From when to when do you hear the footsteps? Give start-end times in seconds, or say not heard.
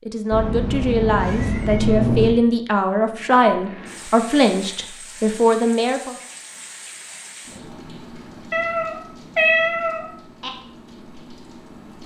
not heard.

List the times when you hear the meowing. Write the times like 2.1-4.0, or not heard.
0.3-2.3, 8.5-10.5.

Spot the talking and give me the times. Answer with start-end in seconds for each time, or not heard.
0.0-6.2.